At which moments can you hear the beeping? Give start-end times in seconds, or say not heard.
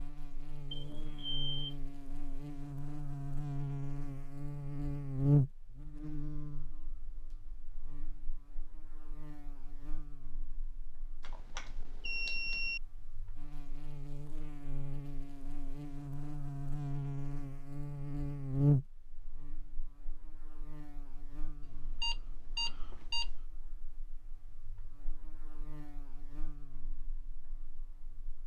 0.7-1.8, 11.2-12.8, 21.6-23.4.